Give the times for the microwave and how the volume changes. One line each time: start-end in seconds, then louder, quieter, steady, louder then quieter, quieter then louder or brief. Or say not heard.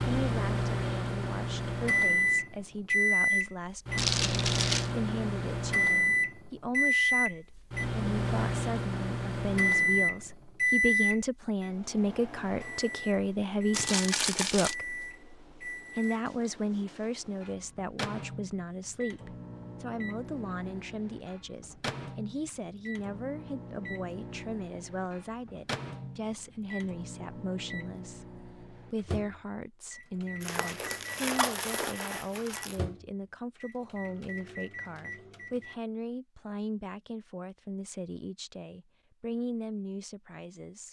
0.0-35.8 quieter.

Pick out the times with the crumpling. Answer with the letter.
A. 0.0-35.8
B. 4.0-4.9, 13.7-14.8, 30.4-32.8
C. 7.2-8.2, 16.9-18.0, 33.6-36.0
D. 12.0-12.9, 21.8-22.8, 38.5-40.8
B.